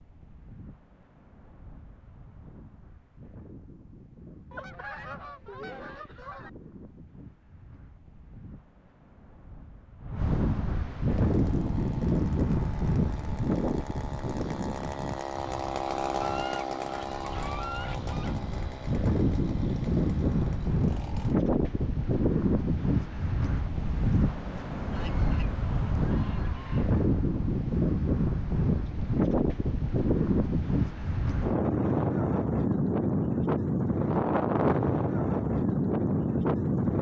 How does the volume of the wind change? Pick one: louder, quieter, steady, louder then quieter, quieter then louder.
louder.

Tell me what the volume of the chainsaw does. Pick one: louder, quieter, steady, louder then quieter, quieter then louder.
louder then quieter.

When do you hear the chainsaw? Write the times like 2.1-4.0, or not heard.
11.1-21.4.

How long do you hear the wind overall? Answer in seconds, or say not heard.
37 s.